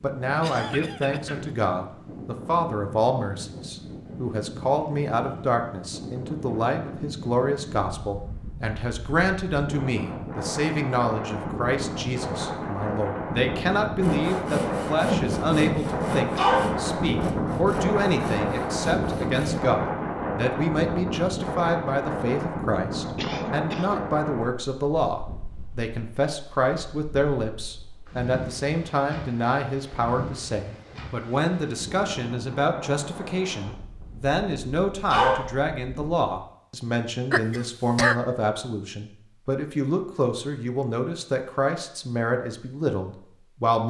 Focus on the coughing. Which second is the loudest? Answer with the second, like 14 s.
38 s.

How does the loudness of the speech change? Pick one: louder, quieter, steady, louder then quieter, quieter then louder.
steady.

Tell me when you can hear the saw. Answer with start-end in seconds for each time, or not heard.
14.0-19.6.